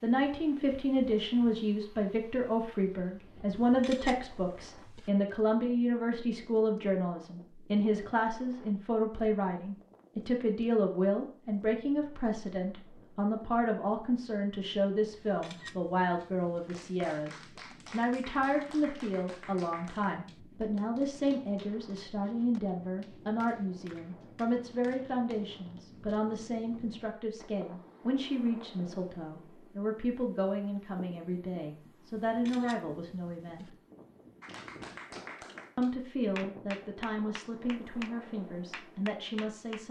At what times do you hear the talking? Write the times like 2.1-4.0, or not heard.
0.0-33.8, 35.8-39.8.